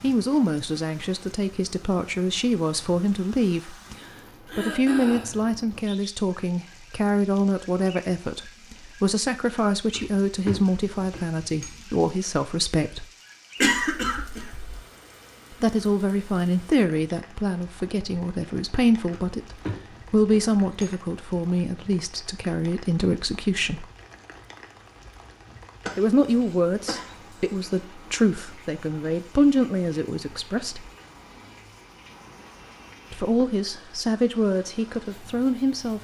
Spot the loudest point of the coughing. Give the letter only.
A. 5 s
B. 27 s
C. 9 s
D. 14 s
D.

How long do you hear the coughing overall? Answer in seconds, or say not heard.
4 s.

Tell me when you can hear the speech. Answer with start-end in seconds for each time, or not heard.
0.0-4.0, 4.5-13.1, 15.5-19.4, 20.1-23.9, 25.9-30.9, 33.1-35.9.